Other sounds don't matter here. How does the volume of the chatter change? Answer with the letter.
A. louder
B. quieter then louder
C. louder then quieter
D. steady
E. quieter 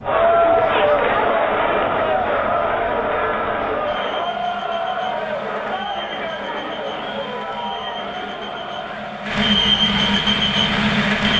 E.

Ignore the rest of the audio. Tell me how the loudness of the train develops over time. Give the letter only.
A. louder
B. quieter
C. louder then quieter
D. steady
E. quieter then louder
A.